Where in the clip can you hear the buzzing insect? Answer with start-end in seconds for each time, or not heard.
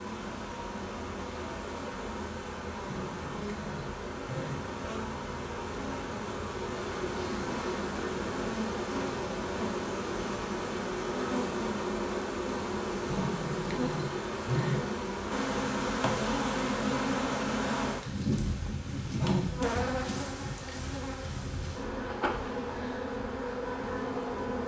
0.0-24.6.